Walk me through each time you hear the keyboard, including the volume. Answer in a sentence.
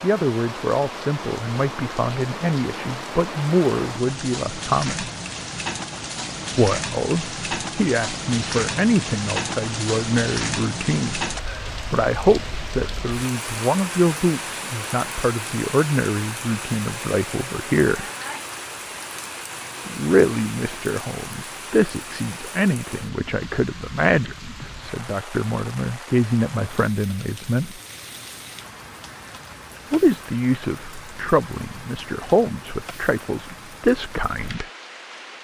The keyboard can't be heard in this clip.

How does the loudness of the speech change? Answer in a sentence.
The volume of the speech stays about the same.